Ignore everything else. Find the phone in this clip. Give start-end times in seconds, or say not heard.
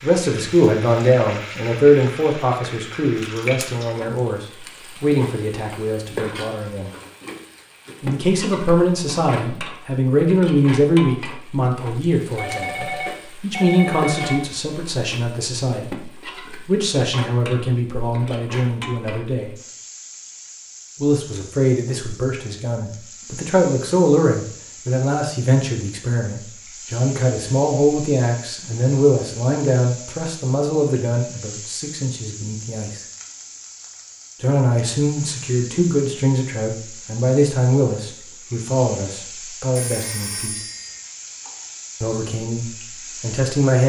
12.3-14.3, 39.8-41.0.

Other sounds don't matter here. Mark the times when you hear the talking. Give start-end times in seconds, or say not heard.
0.0-6.9, 8.0-19.6, 21.0-33.0, 34.4-40.6, 42.0-43.8.